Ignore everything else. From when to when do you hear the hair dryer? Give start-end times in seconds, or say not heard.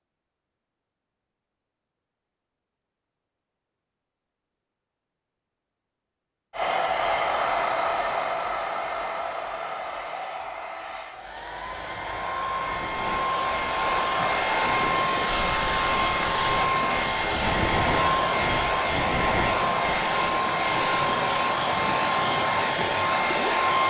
6.5-23.8.